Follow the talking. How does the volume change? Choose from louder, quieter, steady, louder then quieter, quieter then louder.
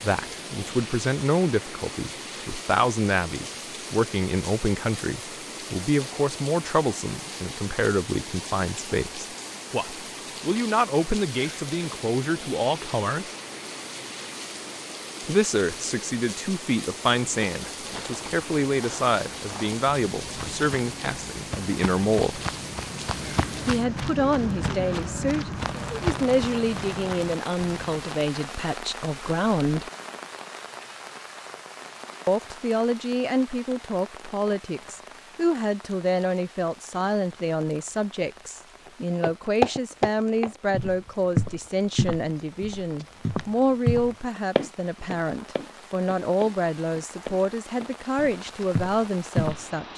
steady.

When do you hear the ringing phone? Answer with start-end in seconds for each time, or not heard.
not heard.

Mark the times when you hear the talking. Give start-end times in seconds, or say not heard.
0.0-13.3, 15.2-22.4, 23.6-29.9, 32.2-49.9.